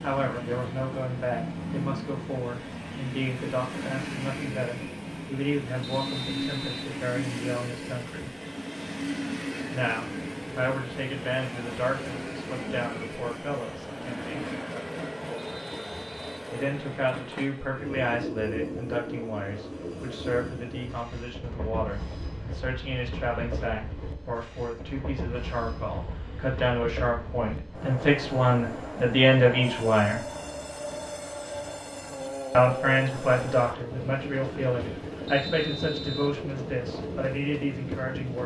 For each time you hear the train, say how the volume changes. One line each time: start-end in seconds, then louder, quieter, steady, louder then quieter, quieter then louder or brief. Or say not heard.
0.0-38.4 steady.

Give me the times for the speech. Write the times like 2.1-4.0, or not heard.
0.0-8.3, 9.7-14.4, 16.5-30.2, 32.5-38.4.